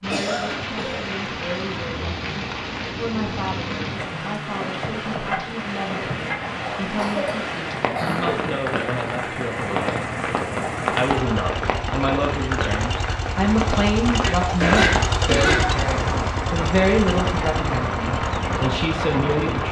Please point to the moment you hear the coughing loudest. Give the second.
15 s.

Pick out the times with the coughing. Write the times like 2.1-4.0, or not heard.
0.1-1.1, 6.7-8.3, 14.2-15.6.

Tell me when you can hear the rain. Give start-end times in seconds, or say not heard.
0.0-19.6.